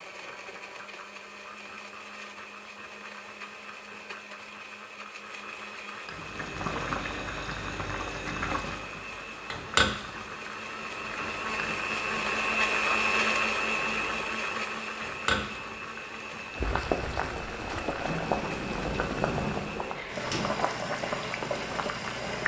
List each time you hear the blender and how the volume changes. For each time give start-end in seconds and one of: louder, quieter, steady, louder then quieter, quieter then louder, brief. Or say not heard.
0.0-22.4 louder then quieter.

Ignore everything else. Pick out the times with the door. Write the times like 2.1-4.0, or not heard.
18.0-20.5.